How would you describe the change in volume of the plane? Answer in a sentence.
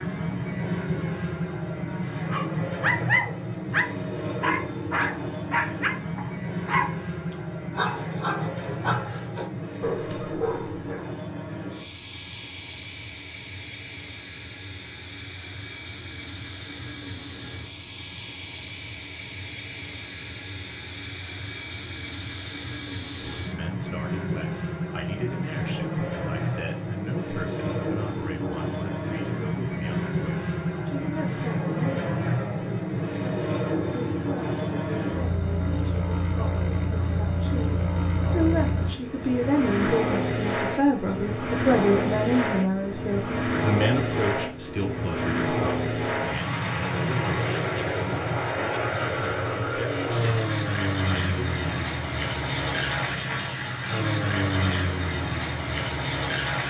The volume of the plane goes down, then up.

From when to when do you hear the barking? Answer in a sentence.
You can hear the barking from 2.2 to 7.0 s and from 7.7 to 11.1 s.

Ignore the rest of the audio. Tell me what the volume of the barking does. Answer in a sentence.
The loudness of the barking goes down.